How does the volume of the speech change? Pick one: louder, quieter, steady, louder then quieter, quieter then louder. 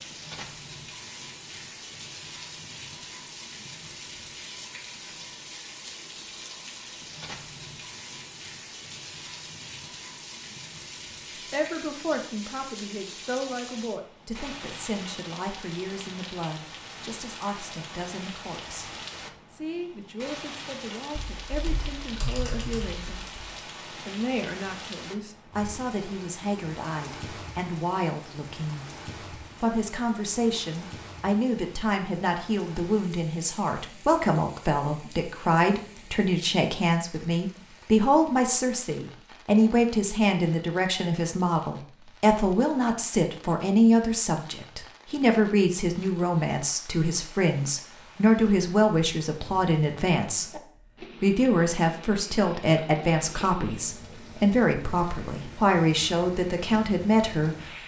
louder.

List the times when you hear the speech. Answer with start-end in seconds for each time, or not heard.
11.5-57.8.